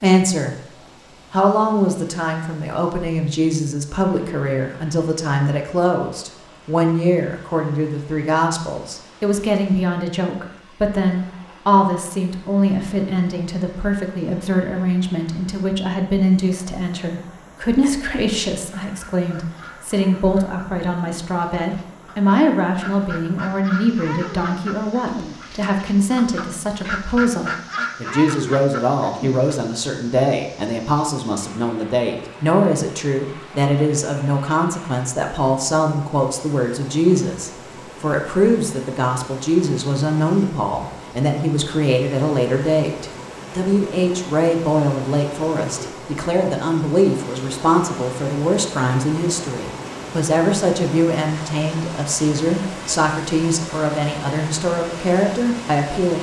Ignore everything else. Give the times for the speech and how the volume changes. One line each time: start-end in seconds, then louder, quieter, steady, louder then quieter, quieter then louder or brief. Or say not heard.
0.0-0.6 brief
1.3-56.1 steady.